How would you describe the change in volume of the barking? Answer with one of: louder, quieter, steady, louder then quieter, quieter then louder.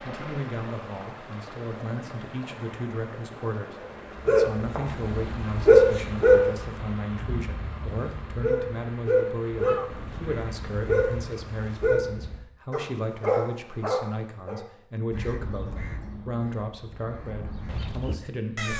quieter.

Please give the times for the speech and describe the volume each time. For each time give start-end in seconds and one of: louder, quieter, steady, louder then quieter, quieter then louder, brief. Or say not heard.
0.1-18.7 steady.